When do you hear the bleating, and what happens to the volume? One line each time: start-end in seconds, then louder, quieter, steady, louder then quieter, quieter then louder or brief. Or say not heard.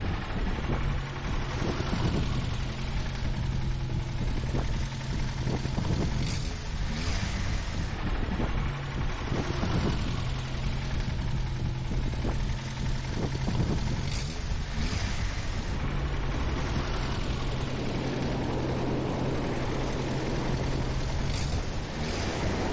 not heard.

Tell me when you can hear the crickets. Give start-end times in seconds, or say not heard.
not heard.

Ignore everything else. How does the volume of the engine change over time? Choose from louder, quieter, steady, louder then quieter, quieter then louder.
steady.